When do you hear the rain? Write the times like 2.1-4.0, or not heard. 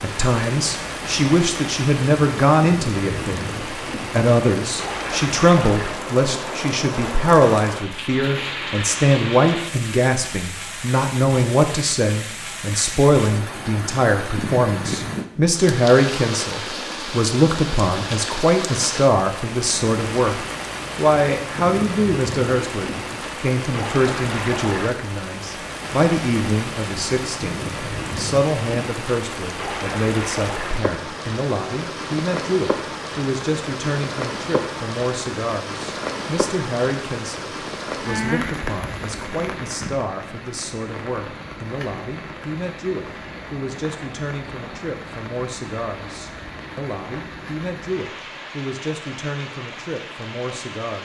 0.0-51.0.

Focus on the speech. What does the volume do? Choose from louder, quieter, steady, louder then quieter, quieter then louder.
quieter.